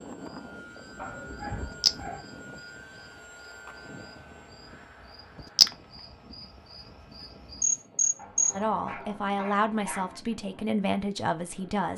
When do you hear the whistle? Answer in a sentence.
You can't hear the whistle here.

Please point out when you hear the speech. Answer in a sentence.
The speech can be heard from 8.6 to 11.9 s.